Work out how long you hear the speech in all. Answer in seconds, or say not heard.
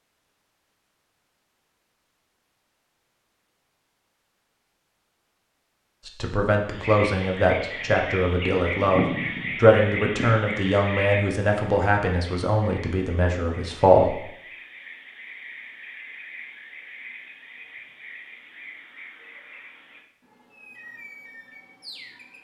8 s.